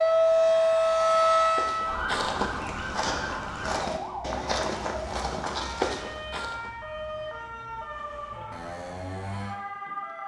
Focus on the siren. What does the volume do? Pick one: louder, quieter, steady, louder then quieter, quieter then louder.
quieter.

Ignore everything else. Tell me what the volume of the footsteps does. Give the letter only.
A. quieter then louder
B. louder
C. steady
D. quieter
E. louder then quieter
B.